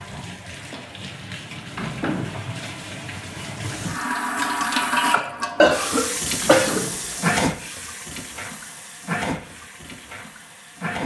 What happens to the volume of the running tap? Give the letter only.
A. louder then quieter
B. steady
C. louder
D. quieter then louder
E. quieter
A.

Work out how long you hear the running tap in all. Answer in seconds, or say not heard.
11 s.